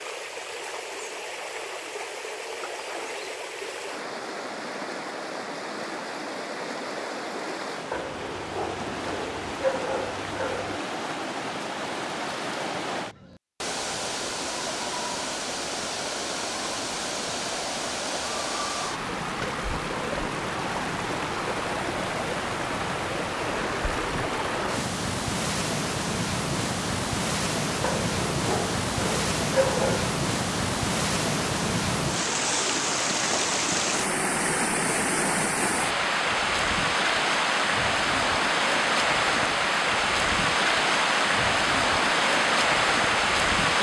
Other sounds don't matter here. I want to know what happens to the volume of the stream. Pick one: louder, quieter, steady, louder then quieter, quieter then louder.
louder.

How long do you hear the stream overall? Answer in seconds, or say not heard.
44 s.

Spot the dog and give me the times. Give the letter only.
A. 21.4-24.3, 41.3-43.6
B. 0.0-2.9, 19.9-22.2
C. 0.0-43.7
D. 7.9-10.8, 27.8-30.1
D.